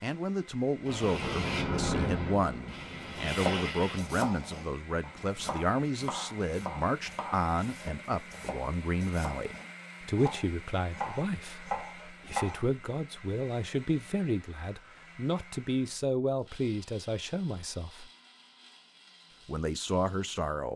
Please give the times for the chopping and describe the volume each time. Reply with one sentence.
The chopping can be heard from 3.1 to 12.7 s, getting quieter then louder.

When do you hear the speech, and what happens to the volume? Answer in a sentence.
The speech can be heard from 0.0 to 18.1 s, at a steady volume; and briefly from 19.4 to 20.7 s.